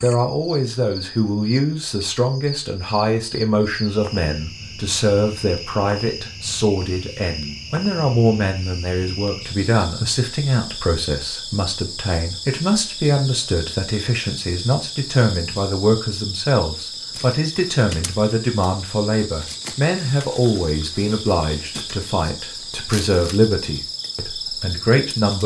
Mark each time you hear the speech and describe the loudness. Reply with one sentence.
You can hear the speech from 0.0 to 25.4 s, at a steady volume.